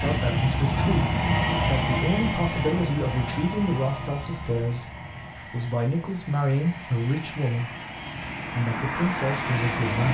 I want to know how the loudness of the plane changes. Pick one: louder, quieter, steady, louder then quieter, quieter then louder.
quieter then louder.